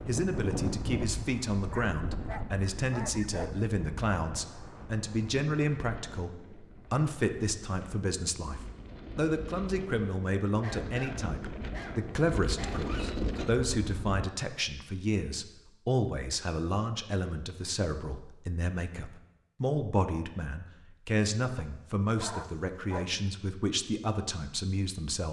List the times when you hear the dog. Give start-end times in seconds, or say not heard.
1.7-3.6, 10.6-13.2, 21.6-23.1.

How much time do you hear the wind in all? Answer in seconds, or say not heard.
14 s.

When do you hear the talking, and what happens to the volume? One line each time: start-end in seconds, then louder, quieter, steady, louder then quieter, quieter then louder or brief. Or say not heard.
0.1-25.2 steady.